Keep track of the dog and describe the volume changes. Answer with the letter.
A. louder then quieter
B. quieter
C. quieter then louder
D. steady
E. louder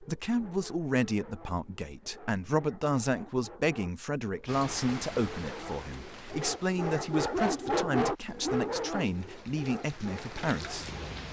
A.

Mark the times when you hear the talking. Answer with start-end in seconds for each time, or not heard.
0.0-11.2.